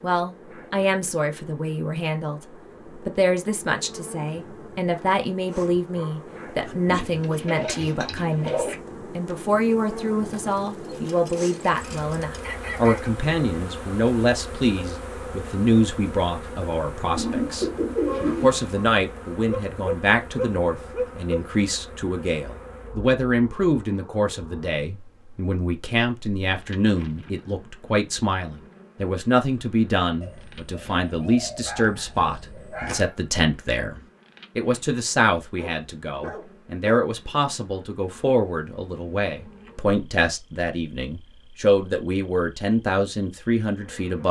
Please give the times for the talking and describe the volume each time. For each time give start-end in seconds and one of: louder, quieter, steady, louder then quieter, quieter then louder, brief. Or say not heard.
0.0-44.2 steady.